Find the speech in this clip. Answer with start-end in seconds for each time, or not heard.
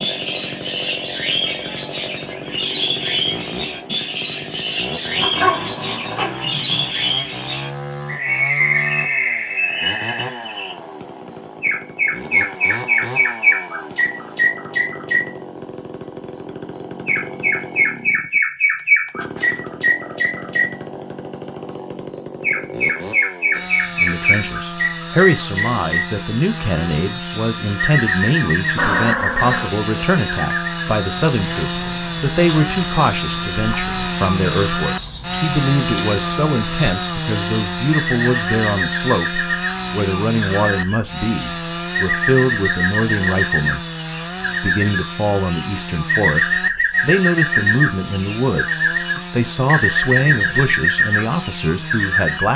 23.9-43.9, 44.6-52.5.